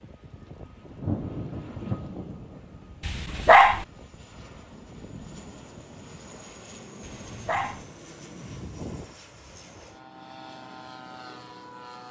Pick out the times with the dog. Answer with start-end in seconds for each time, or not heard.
3.0-3.9, 7.0-7.8.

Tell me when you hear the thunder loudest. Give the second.
1 s.